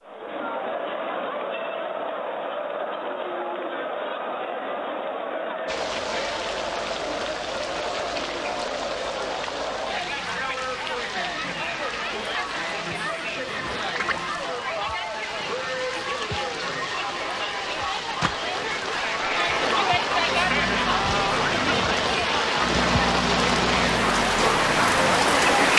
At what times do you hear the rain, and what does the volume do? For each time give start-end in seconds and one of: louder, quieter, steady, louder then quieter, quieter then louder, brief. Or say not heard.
5.7-25.7 louder.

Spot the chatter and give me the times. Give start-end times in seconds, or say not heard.
0.0-25.7.